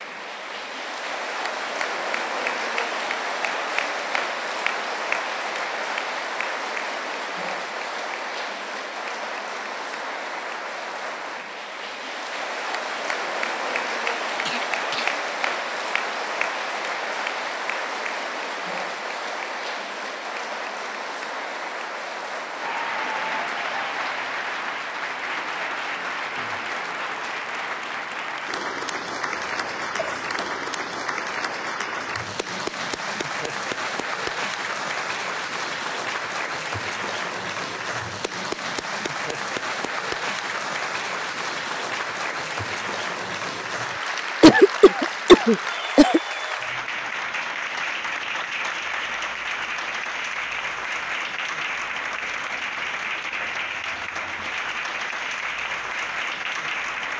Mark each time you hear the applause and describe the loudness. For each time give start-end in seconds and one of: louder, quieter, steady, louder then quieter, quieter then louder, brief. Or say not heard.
0.0-57.1 steady.